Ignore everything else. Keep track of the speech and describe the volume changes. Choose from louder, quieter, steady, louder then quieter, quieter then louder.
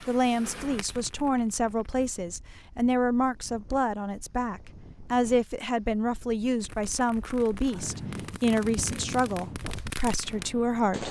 steady.